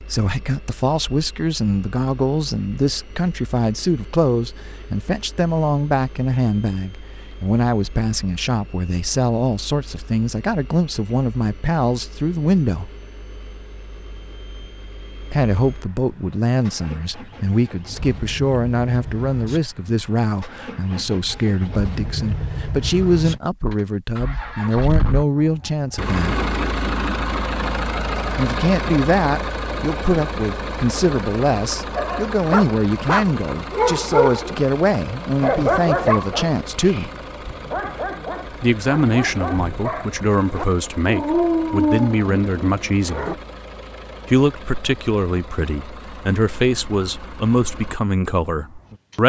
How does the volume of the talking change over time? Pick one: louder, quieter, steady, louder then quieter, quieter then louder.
steady.